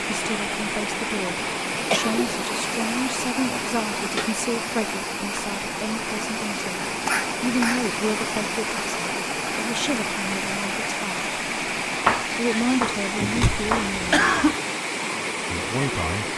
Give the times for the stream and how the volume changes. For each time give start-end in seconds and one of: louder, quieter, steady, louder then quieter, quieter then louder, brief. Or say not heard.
0.0-16.3 steady.